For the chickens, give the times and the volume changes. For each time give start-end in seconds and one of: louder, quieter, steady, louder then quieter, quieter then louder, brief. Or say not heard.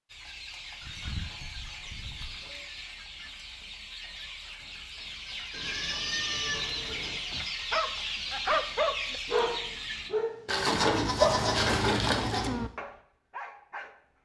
0.1-10.1 louder.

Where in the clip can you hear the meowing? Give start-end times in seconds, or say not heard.
not heard.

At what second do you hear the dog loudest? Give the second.
11 s.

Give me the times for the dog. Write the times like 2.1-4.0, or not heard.
6.8-14.0.